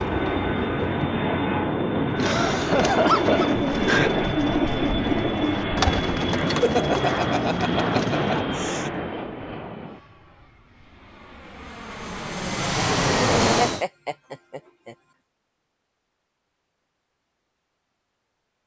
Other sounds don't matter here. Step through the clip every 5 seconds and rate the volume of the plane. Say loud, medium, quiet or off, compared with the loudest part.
loud, loud, loud, off.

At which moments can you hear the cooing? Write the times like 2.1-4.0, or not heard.
2.1-8.4.